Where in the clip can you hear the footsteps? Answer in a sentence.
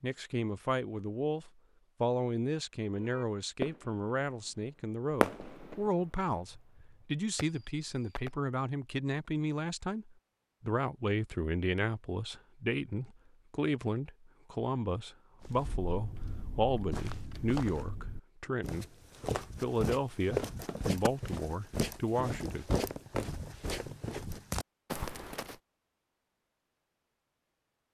You can hear the footsteps from 15.4 to 25.6 s.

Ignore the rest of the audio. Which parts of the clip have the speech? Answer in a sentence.
The speech can be heard from 0.0 to 18.9 s and from 19.6 to 23.1 s.